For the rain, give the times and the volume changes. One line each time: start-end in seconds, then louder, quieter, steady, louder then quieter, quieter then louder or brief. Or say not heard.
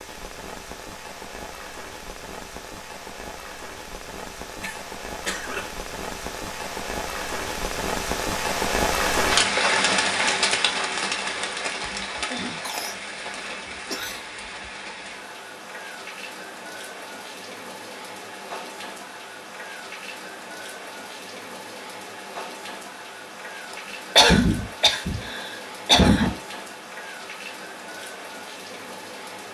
0.0-29.5 louder then quieter.